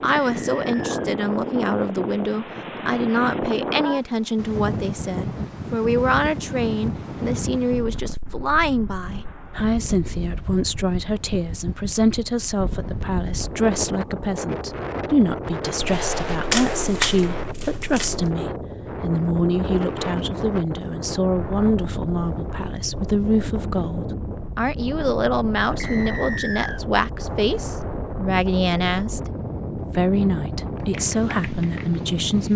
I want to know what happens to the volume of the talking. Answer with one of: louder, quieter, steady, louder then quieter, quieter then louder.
steady.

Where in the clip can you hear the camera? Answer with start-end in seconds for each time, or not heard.
16.1-18.3.